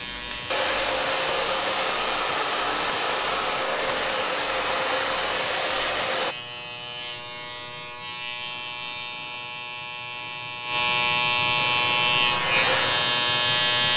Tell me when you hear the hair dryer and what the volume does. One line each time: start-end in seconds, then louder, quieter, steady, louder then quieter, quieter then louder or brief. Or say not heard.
0.0-6.3 steady
11.6-13.9 brief.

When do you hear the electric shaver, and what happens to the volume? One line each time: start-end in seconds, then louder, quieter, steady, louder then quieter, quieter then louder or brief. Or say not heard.
0.0-13.9 louder.